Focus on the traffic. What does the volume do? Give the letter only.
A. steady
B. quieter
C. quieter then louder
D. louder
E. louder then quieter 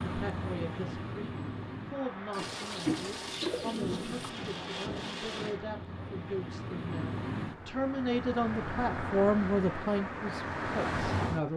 C.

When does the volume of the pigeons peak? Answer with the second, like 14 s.
3 s.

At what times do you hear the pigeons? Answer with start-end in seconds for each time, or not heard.
2.3-4.3.